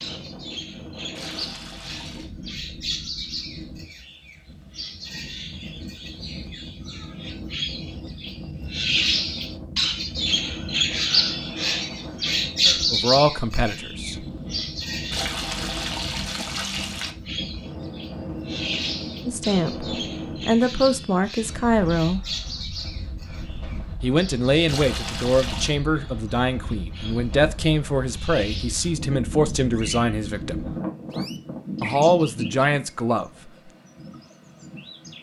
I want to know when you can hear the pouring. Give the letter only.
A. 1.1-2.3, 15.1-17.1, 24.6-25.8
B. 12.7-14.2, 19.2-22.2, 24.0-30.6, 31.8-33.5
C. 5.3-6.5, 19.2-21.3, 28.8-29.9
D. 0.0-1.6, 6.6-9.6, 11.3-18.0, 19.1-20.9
A.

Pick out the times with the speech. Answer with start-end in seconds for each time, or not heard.
12.7-14.2, 19.2-22.2, 24.0-30.6, 31.8-33.5.